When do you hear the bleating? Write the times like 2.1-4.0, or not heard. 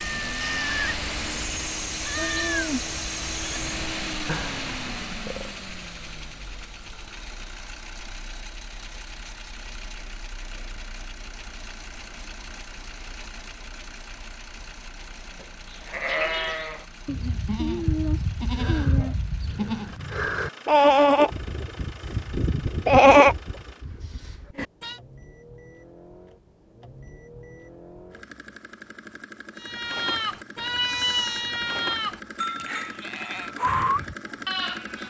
0.0-5.5, 15.7-24.9, 29.6-35.0.